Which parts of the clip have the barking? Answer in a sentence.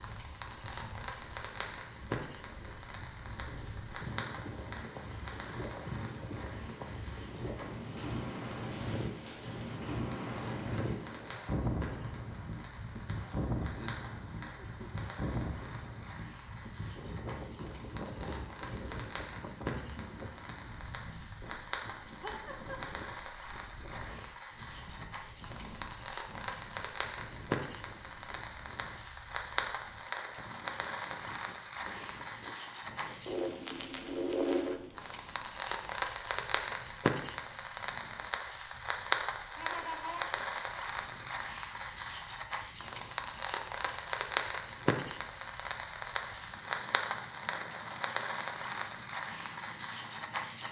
You can't hear the barking here.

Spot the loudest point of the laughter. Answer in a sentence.
The volume of the laughter peaks at 40 seconds.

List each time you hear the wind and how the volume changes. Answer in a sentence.
You can hear the wind from 0.0 to 50.6 s, getting quieter.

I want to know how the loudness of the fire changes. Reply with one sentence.
The volume of the fire goes up.